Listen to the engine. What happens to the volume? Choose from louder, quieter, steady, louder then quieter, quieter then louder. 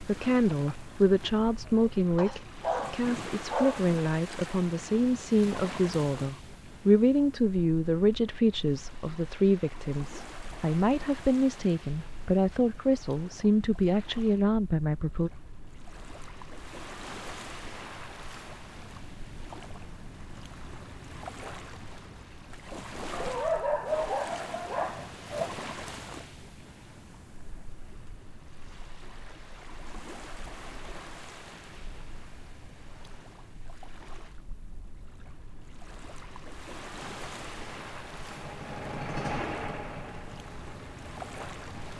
louder then quieter.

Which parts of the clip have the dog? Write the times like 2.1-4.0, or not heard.
2.1-3.8, 23.1-25.5.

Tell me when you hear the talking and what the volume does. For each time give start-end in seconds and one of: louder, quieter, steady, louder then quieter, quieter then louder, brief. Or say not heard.
0.1-15.3 steady.